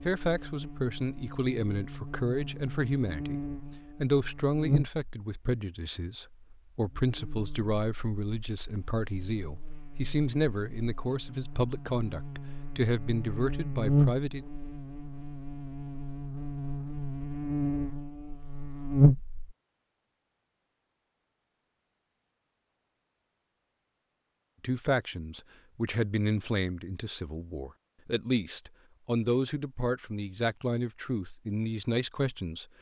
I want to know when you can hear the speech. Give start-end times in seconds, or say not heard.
0.0-3.4, 4.0-14.4, 24.6-32.6.